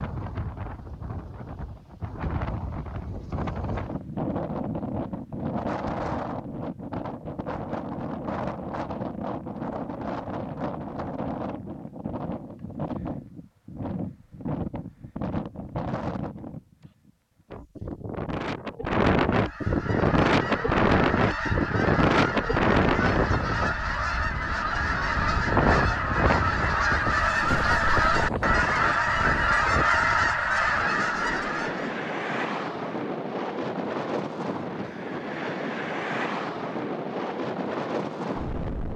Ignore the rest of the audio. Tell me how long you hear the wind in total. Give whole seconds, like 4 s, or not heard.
39 s.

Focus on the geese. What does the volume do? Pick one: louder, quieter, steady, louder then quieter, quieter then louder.
louder.